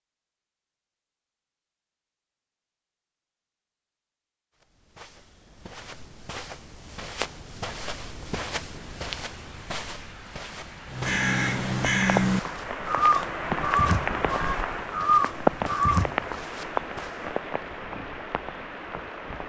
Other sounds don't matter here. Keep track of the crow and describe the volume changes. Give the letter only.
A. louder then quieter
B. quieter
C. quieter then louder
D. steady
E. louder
C.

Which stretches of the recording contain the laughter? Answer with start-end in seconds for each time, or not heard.
not heard.